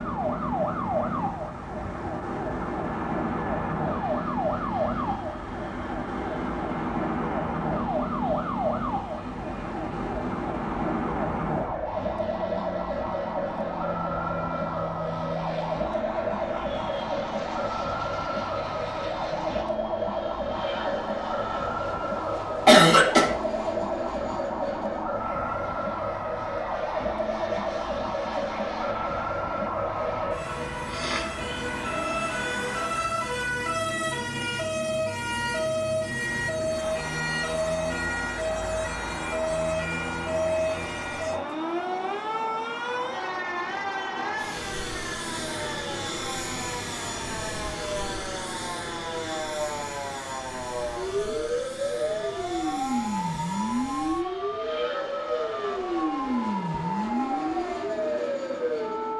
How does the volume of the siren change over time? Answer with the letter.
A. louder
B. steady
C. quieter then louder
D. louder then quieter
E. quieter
B.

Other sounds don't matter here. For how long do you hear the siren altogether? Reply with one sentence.
The siren can be heard for 59 seconds in total.